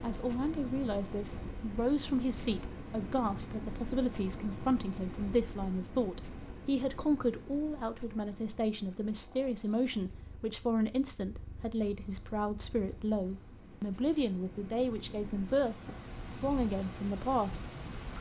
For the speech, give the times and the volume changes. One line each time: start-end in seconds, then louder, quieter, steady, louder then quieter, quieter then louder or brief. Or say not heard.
0.0-18.1 steady.